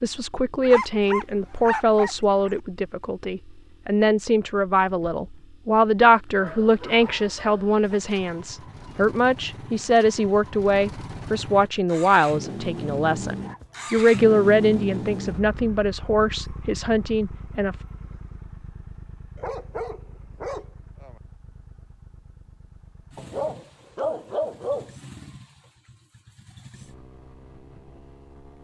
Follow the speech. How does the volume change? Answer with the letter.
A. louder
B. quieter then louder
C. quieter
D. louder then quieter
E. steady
E.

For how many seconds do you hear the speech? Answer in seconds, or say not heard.
18 s.